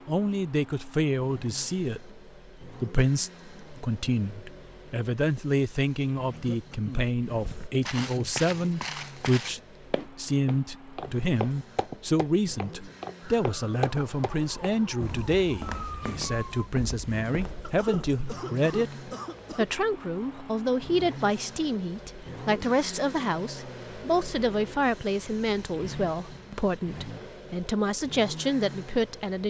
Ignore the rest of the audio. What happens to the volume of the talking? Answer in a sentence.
The loudness of the talking stays about the same.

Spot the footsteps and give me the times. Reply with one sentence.
You can hear the footsteps from 7.3 to 18.2 s.